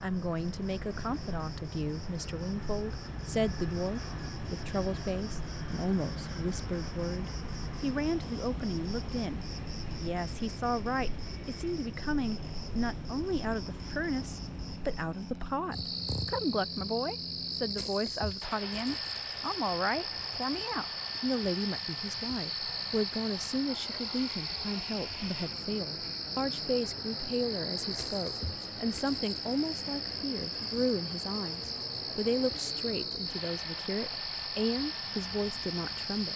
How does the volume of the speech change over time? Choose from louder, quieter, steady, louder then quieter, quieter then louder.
steady.